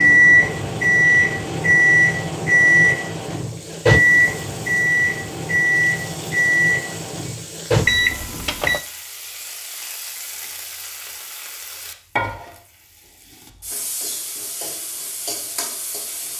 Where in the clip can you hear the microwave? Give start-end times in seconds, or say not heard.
0.0-8.8.